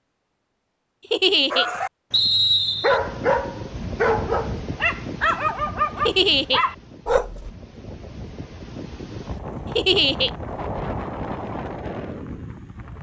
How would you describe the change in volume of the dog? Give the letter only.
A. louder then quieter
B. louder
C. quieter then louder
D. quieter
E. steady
E.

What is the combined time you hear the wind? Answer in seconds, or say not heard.
10 s.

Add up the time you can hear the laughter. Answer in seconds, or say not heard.
2 s.